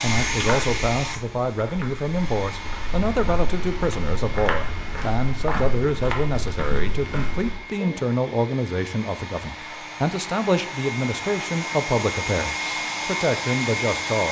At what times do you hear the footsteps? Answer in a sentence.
The footsteps can be heard from 0.1 to 7.5 s.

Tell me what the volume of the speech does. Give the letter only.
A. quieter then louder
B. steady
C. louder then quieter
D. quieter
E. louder
B.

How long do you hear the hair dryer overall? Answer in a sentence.
You can hear the hair dryer for 14 seconds altogether.